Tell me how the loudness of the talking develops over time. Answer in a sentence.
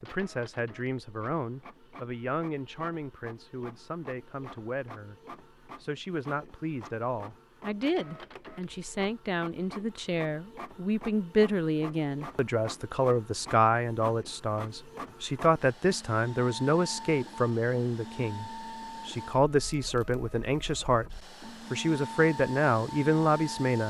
The loudness of the talking goes up.